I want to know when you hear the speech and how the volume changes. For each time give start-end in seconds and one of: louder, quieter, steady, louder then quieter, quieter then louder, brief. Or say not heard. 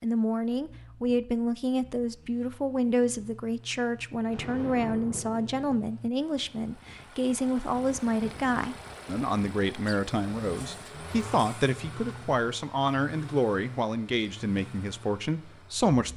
0.0-16.1 steady.